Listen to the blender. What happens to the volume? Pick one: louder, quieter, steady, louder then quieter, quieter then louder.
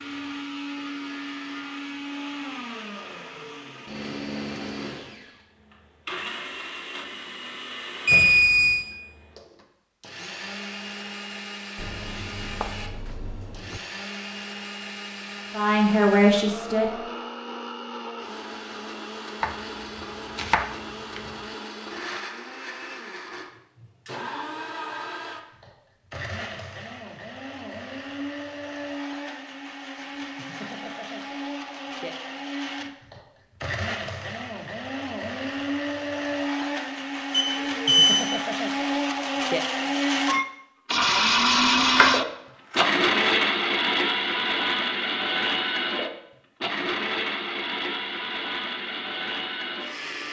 louder.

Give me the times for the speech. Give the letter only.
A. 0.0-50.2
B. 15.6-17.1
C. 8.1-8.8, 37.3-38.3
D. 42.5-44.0
B.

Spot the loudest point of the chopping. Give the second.
42 s.